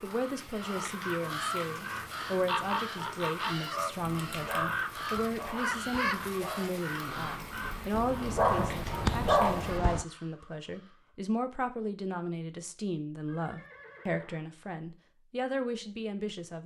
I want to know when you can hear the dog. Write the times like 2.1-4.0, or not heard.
4.2-10.1.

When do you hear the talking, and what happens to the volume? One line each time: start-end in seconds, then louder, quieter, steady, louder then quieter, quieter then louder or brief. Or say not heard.
0.0-16.6 steady.